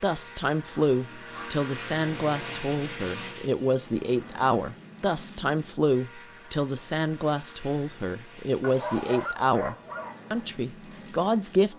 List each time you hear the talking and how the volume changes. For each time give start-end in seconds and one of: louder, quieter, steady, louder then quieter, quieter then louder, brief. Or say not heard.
0.0-11.7 steady.